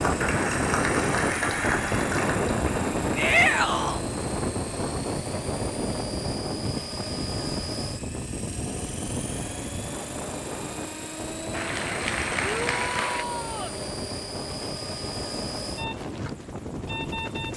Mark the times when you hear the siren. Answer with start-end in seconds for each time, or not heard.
not heard.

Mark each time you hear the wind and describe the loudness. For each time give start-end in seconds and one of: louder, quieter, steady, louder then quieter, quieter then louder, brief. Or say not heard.
0.0-17.5 quieter.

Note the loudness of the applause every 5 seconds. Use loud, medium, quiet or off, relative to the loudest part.
loud, off, loud, off.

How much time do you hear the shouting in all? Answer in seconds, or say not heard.
2 s.